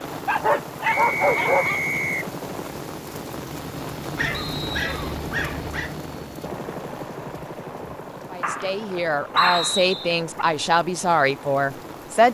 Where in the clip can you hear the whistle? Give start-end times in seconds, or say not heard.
0.8-2.3, 4.3-5.0, 9.3-10.0.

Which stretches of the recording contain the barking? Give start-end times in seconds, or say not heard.
0.2-1.8, 4.2-5.9, 8.4-10.4.